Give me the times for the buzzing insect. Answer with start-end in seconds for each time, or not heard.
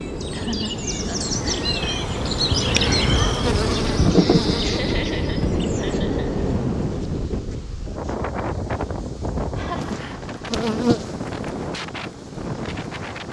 0.0-13.2.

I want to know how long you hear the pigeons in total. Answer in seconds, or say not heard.
not heard.